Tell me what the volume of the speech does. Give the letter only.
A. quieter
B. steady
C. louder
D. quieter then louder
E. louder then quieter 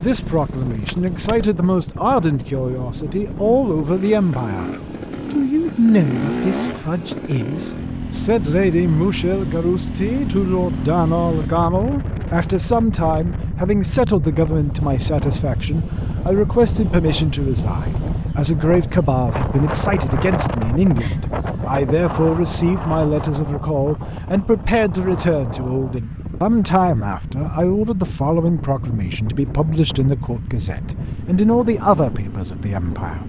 B.